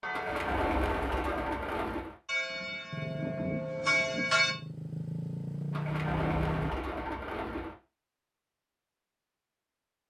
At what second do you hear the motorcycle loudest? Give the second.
6 s.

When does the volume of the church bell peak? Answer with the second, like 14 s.
4 s.